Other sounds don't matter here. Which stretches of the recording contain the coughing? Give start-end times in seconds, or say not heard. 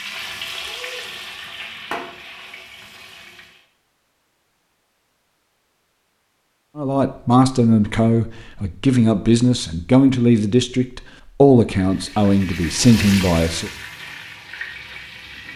not heard.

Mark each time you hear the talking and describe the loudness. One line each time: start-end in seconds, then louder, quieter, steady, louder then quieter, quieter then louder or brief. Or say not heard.
6.8-13.7 steady.